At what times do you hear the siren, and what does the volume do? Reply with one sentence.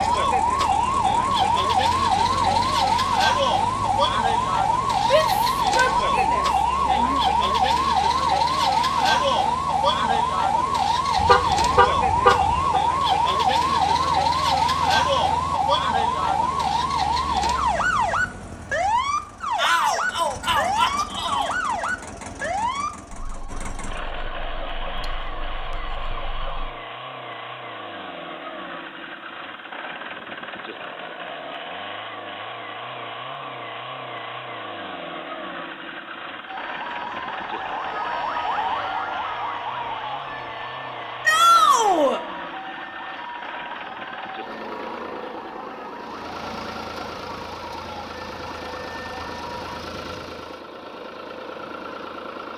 You can hear the siren from 0.0 to 26.8 s, getting quieter; and from 36.5 to 49.9 s, getting quieter.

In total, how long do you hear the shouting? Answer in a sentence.
The shouting can be heard for 5 seconds in total.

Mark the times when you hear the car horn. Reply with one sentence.
The car horn can be heard from 11.2 to 12.8 s.